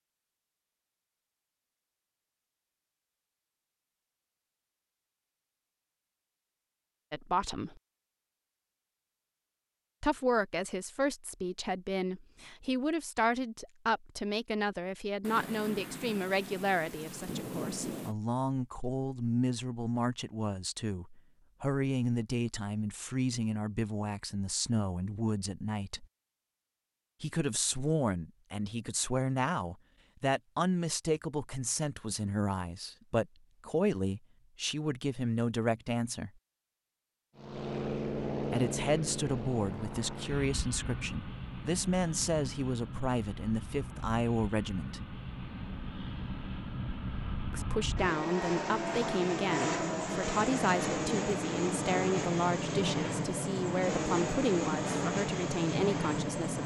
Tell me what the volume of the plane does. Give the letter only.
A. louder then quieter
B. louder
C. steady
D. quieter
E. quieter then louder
E.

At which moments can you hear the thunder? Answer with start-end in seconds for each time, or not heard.
15.2-18.1.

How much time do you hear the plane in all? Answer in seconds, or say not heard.
19 s.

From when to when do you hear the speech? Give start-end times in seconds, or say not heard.
7.1-7.8, 10.0-26.1, 27.2-36.3, 38.5-45.0, 47.5-56.6.